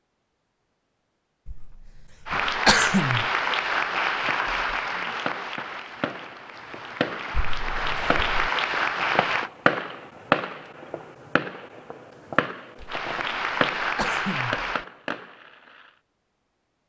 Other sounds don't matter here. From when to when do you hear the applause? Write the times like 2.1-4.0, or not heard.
2.2-9.5, 12.8-14.8.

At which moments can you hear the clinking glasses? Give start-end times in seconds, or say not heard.
not heard.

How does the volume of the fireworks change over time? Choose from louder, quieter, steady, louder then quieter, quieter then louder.
louder then quieter.